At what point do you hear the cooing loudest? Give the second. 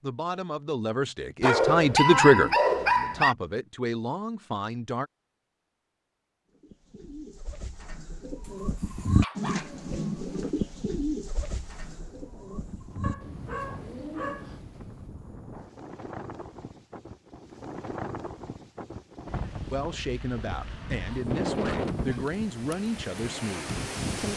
9 s.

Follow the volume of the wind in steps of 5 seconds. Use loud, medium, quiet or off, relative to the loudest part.
off, off, quiet, medium, loud.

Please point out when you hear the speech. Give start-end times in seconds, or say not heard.
0.0-5.1, 19.7-24.3.